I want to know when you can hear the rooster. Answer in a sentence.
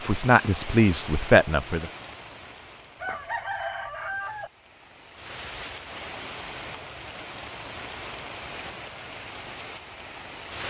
You can hear the rooster from 3.0 to 4.5 s.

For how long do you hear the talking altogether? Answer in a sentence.
The talking can be heard for 2 seconds in total.